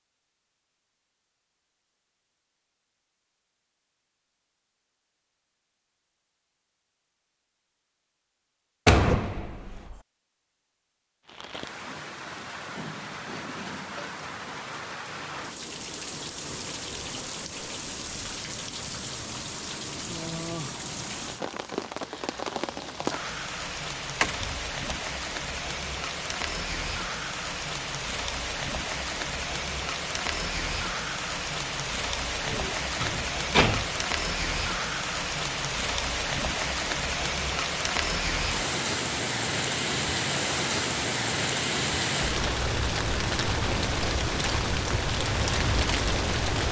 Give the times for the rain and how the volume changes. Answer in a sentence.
The rain can be heard from 11.2 to 46.6 s, getting louder.